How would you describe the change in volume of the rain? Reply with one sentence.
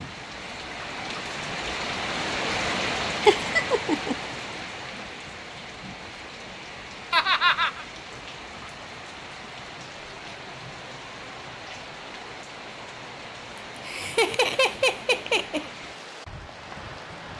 The volume of the rain goes down.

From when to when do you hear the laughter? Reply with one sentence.
The laughter can be heard from 3.2 to 4.2 s, from 7.1 to 7.8 s and from 13.8 to 15.7 s.